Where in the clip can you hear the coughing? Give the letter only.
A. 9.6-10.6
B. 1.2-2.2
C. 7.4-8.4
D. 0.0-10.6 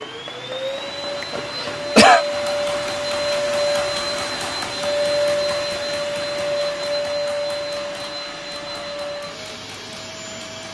B.